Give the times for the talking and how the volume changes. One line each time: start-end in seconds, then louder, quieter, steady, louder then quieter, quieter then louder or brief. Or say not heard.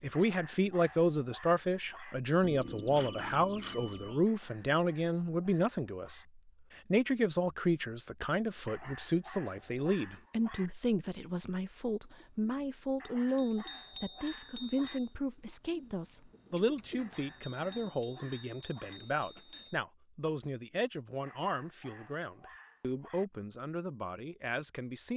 0.0-25.1 quieter.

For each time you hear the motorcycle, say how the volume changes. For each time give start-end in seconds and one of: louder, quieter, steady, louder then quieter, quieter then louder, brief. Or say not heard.
not heard.